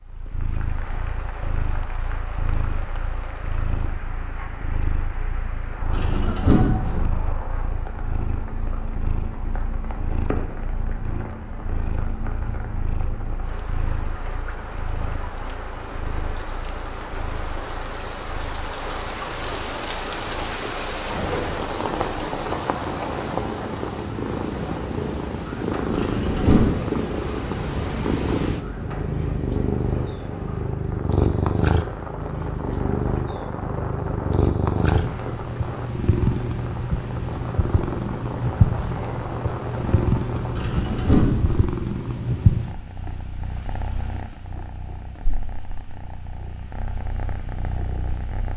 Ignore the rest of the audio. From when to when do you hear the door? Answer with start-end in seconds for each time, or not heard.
5.9-7.3, 25.9-26.6, 40.5-41.8.